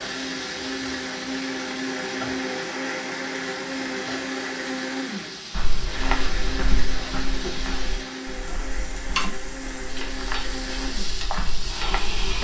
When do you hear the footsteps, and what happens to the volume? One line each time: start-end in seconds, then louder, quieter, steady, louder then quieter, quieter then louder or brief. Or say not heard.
5.5-12.3 quieter then louder.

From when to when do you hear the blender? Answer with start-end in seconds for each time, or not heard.
0.0-12.3.